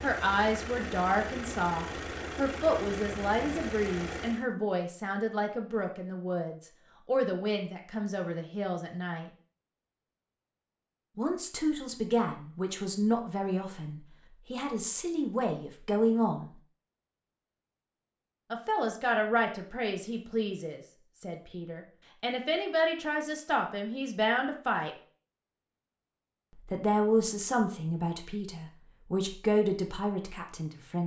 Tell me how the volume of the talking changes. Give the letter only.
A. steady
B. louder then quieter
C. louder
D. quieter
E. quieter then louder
A.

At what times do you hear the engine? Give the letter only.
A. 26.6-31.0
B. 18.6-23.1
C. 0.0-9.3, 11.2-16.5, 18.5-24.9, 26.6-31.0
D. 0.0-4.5
D.